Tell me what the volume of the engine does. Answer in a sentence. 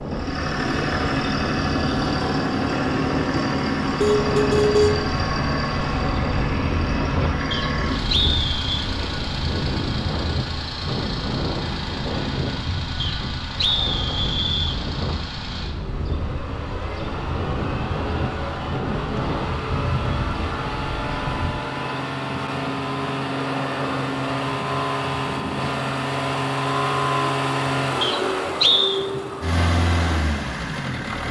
The volume of the engine goes down, then up.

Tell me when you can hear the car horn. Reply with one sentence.
You can hear the car horn from 4.0 to 5.0 s.